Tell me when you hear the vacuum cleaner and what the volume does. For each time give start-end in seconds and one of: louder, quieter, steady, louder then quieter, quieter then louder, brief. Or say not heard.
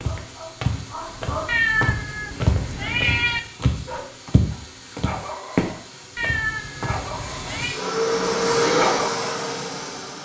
0.0-10.2 louder.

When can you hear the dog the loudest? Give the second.
9 s.